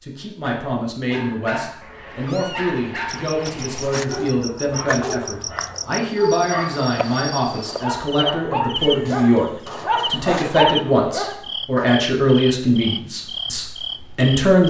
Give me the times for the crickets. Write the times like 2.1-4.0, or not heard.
3.1-14.6.